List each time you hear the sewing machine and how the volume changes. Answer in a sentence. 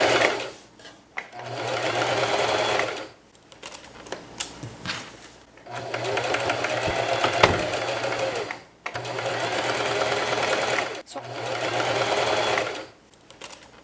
The sewing machine can be heard from 0.0 to 13.7 s, getting quieter then louder.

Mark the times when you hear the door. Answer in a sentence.
The door can be heard from 6.8 to 8.3 s.